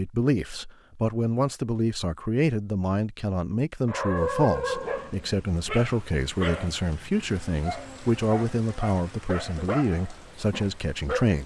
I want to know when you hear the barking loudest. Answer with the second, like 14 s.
4 s.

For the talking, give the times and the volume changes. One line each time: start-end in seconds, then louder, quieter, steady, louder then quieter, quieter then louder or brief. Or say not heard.
0.0-11.4 steady.